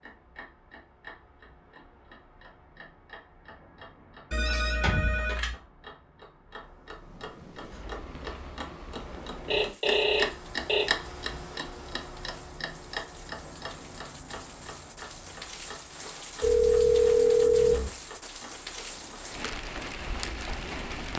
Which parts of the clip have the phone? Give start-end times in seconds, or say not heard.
4.3-5.5, 9.4-10.8, 16.4-17.9.